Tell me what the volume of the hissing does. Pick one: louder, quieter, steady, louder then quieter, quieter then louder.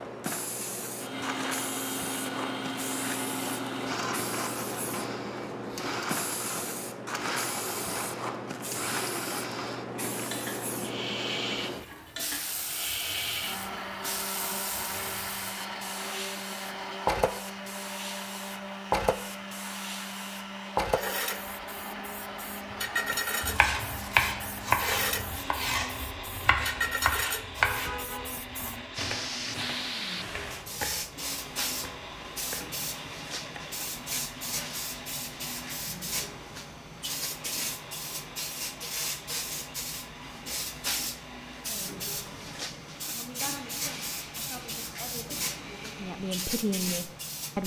steady.